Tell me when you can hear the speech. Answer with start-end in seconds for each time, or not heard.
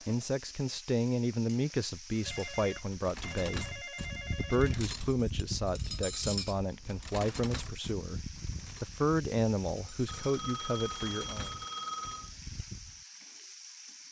0.1-11.5.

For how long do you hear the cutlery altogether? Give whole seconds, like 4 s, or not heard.
11 s.